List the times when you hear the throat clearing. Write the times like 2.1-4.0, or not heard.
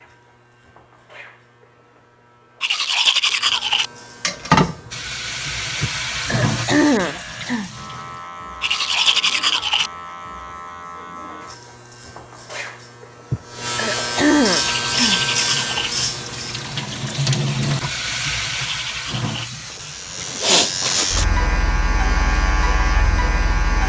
5.8-7.7, 13.3-15.2.